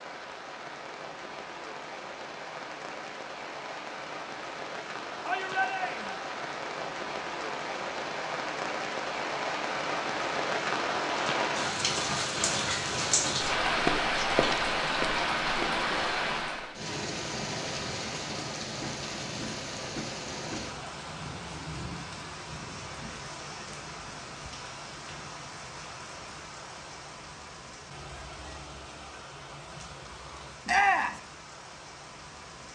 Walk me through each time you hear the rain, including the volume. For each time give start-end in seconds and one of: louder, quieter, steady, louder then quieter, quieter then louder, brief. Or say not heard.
0.0-32.6 louder then quieter.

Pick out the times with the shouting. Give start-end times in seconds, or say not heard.
5.2-6.2, 30.6-31.2.